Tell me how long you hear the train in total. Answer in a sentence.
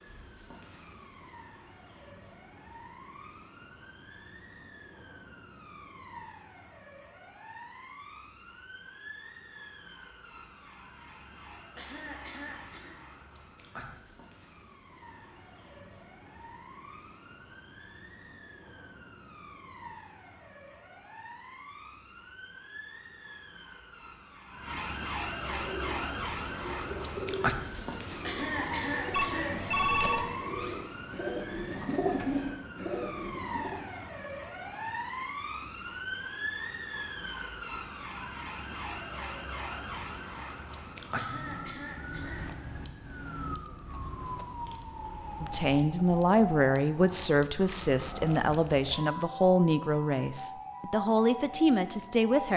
You can't hear the train here.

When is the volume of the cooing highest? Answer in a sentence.
The volume of the cooing peaks at 32 seconds.